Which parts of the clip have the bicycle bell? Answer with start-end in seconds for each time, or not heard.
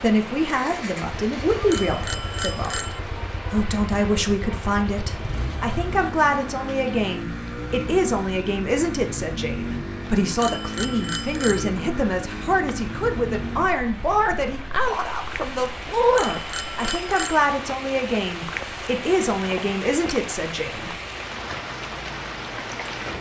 1.6-3.0, 10.3-11.7, 16.1-17.5.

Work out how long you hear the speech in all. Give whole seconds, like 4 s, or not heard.
21 s.